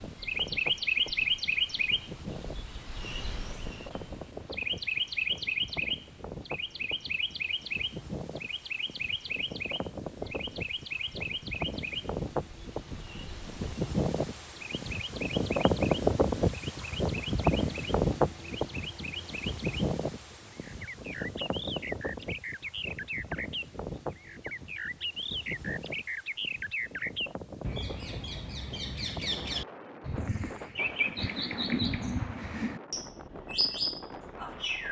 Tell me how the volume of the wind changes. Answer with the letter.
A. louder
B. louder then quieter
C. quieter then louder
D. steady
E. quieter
B.